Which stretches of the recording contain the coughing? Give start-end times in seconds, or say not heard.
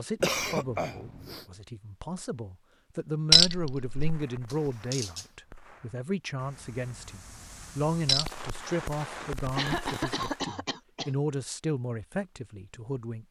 0.2-1.4, 4.5-5.2, 9.6-11.2.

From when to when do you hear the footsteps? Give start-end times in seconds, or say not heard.
not heard.